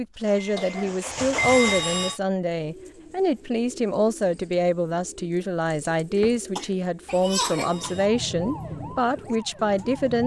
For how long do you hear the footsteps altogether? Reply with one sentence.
The footsteps can't be heard in this clip.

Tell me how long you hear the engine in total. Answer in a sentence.
You can hear the engine for 2 seconds altogether.